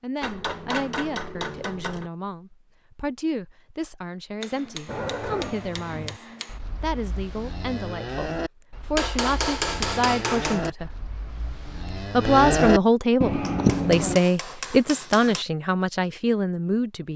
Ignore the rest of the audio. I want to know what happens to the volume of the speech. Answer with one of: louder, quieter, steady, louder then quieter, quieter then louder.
louder.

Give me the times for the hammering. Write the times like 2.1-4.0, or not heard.
0.2-2.1, 4.4-6.6, 8.9-10.7, 13.4-15.4.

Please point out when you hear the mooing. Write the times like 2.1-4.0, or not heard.
4.8-14.2.